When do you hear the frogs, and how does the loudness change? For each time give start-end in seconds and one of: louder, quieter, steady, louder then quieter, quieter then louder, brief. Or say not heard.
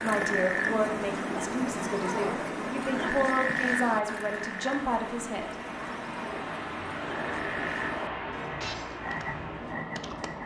0.0-10.4 quieter.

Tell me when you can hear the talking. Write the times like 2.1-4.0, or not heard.
0.0-5.9.